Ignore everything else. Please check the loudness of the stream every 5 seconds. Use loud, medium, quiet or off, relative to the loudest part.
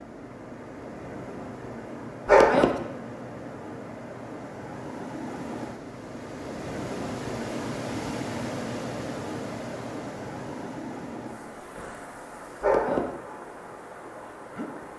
medium, loud, medium.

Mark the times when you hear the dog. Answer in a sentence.
You can hear the dog from 2.2 to 2.8 s and from 12.6 to 13.1 s.